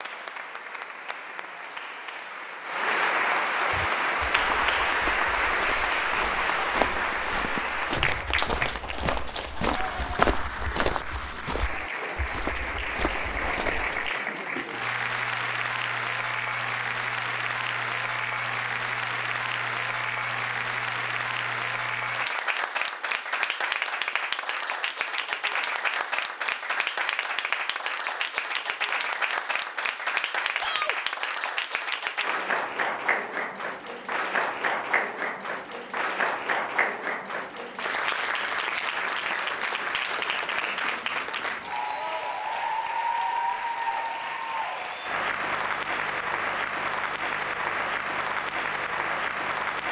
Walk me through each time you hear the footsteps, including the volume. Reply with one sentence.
The footsteps can be heard from 3.7 to 14.1 s, getting louder then quieter.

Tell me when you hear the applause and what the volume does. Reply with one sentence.
You can hear the applause from 0.0 to 49.8 s, at a steady volume.